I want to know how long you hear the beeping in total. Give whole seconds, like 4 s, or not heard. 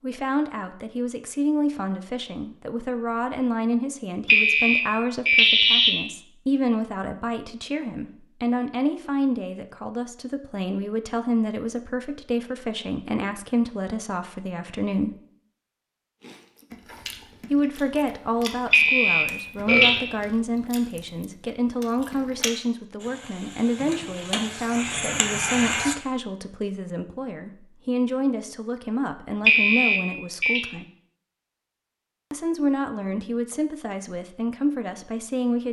4 s.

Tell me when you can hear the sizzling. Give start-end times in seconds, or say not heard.
23.0-25.9.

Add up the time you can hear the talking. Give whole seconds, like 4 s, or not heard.
32 s.